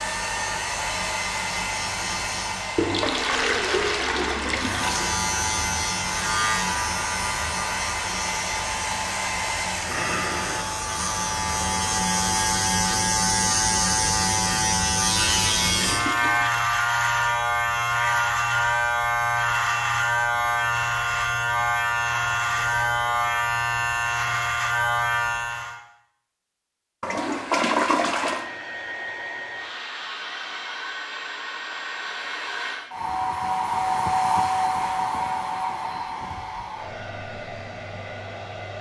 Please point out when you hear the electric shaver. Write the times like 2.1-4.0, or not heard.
0.0-2.9, 4.5-25.8.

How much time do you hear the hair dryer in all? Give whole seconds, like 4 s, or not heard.
23 s.